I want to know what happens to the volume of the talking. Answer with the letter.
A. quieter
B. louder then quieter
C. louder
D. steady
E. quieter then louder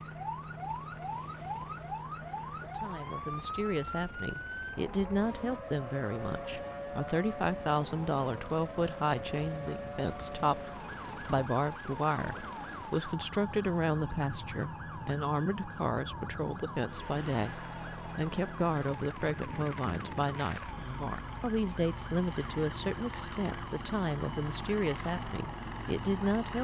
D.